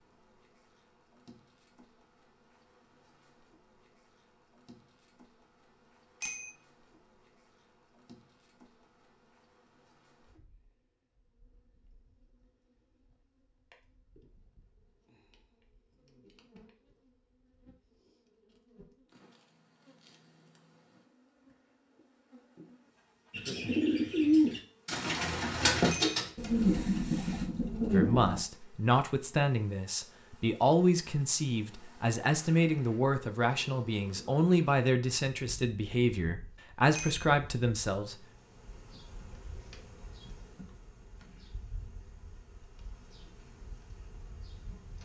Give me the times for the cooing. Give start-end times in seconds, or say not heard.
23.3-28.4.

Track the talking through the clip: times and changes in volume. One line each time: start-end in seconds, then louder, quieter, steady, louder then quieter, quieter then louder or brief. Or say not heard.
27.9-38.2 steady.